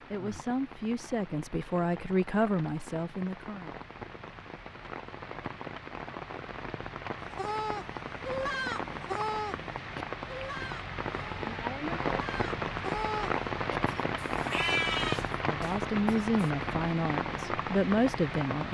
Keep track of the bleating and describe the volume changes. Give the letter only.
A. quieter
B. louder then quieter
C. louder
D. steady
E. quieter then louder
E.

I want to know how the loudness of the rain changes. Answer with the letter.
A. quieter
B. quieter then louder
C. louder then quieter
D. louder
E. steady
D.